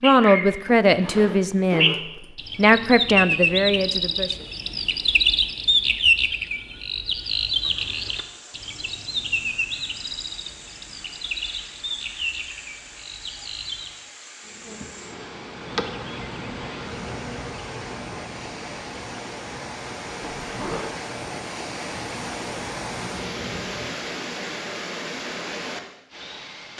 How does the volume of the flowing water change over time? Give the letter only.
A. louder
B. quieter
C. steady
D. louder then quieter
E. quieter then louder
A.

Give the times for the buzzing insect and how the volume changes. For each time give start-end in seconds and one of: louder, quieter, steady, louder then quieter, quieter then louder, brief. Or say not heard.
14.4-24.1 quieter then louder.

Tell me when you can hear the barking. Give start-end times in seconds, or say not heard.
not heard.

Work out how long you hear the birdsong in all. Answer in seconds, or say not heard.
14 s.